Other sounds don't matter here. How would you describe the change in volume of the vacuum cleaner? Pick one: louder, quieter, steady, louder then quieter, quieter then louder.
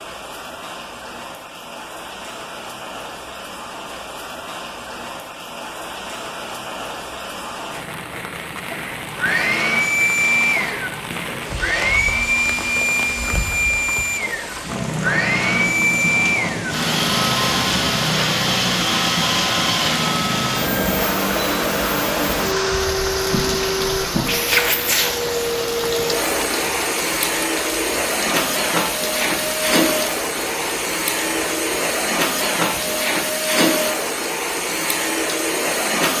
steady.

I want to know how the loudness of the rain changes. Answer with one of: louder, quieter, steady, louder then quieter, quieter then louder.
louder then quieter.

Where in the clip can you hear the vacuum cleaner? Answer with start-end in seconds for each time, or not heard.
9.2-36.1.